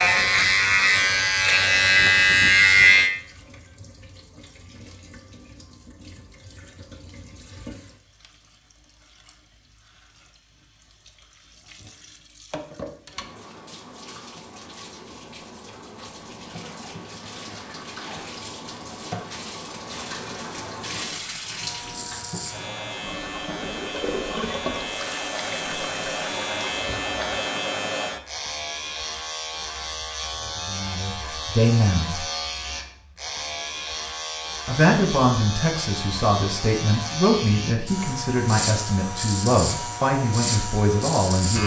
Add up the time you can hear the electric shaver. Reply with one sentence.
You can hear the electric shaver for 23 seconds altogether.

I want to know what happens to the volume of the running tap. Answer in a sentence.
The volume of the running tap goes up.